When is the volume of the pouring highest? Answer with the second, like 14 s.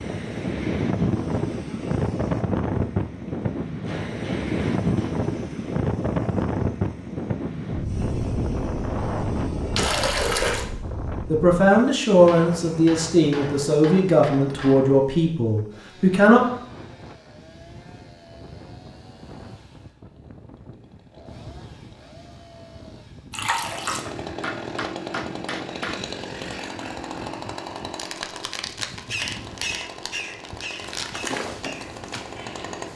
10 s.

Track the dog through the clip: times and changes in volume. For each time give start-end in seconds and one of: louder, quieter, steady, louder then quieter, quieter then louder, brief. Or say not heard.
not heard.